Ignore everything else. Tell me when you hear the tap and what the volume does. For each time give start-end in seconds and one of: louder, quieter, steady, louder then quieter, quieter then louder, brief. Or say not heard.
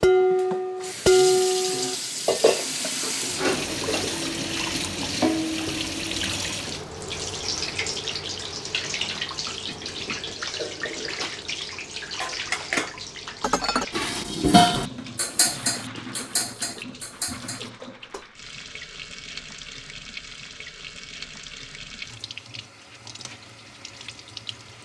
0.0-24.7 quieter.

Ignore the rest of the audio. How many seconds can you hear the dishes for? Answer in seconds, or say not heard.
11 s.